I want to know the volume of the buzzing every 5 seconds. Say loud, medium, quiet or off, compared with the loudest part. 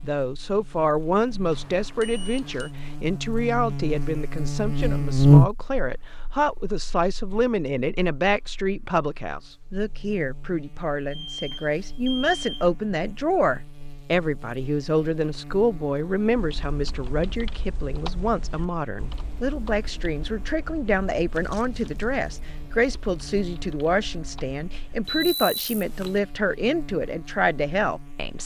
quiet, loud, quiet, quiet, quiet, quiet.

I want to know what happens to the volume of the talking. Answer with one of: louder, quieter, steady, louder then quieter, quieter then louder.
steady.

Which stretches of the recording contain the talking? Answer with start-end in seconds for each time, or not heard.
0.0-28.4.